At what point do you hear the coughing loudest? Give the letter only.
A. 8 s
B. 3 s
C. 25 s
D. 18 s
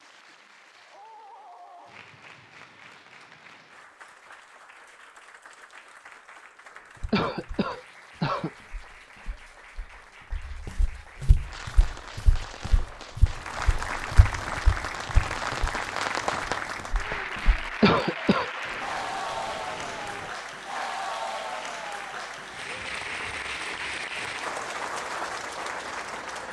D.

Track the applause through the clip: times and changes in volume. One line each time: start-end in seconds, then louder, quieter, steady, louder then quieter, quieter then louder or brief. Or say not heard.
0.0-26.4 louder.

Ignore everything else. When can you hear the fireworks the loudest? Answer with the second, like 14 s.
16 s.